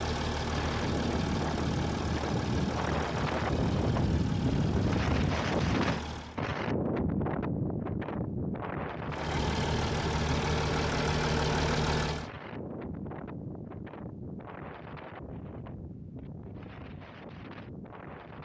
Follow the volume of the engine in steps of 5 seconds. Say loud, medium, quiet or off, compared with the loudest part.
medium, medium, loud, off.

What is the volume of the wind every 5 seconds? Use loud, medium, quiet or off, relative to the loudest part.
loud, loud, medium, quiet.